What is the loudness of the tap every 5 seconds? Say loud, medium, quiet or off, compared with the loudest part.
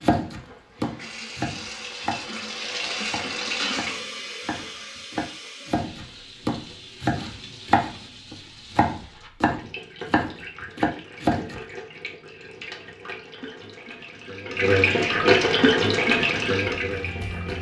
medium, quiet, medium, loud.